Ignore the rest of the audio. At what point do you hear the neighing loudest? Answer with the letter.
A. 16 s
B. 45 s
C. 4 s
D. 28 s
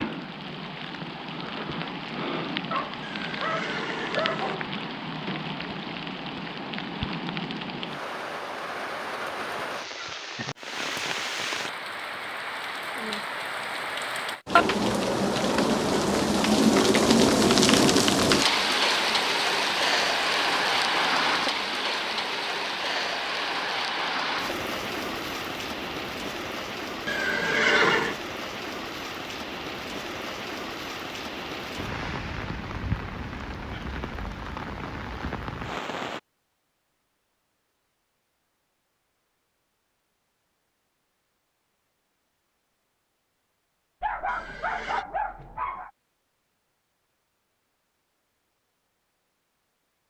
D.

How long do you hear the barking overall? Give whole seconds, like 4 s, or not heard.
4 s.